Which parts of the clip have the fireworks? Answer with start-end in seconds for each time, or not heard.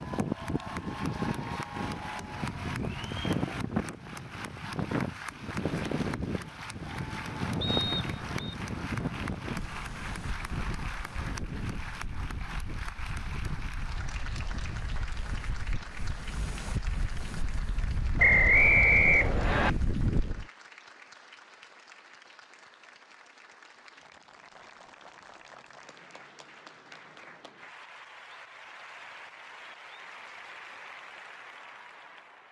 not heard.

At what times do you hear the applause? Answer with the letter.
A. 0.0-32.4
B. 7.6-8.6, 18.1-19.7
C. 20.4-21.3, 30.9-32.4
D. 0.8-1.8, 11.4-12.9
A.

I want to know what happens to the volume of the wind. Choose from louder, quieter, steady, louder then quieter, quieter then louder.
quieter then louder.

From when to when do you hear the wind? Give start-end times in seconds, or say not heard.
0.0-20.4.